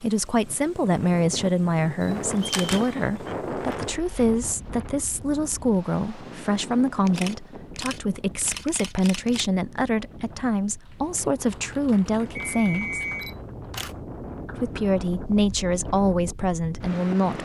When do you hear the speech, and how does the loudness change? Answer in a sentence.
You can hear the speech from 0.0 to 13.0 s, at a steady volume; and briefly from 14.6 to 17.3 s.